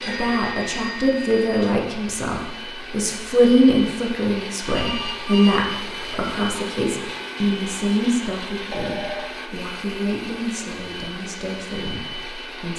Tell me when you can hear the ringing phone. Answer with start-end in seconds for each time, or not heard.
0.0-1.8, 4.7-6.2, 8.7-9.3.